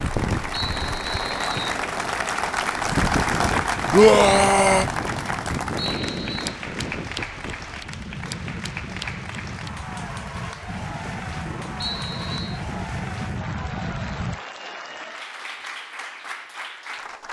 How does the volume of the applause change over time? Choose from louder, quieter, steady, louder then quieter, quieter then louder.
quieter.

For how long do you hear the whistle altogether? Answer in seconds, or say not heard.
3 s.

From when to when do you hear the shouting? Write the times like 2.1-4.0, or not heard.
3.9-4.8.